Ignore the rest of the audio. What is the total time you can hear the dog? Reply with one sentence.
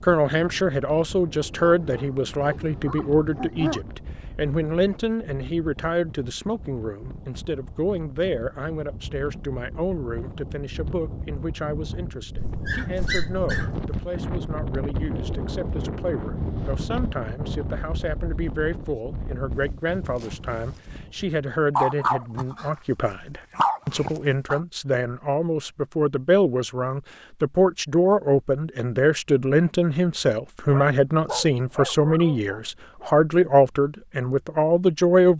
You can hear the dog for 9 seconds altogether.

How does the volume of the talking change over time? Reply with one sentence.
The loudness of the talking goes down, then up.